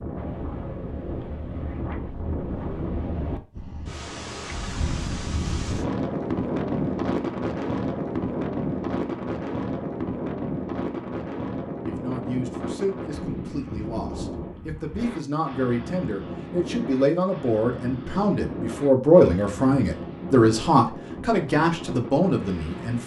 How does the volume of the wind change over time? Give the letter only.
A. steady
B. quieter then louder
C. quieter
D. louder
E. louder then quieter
E.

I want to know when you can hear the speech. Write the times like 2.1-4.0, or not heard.
11.8-23.0.